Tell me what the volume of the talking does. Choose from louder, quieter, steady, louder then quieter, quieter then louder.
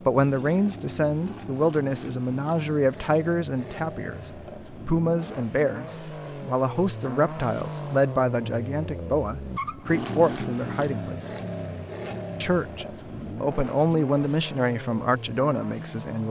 steady.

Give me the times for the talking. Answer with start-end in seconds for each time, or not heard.
0.1-11.3, 12.4-16.2.